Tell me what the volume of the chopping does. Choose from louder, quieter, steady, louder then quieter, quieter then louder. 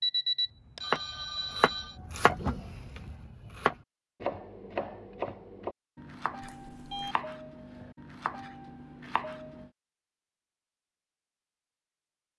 quieter.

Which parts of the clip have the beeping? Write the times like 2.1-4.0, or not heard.
0.0-1.9, 6.4-7.2.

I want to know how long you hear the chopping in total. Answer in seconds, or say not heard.
9 s.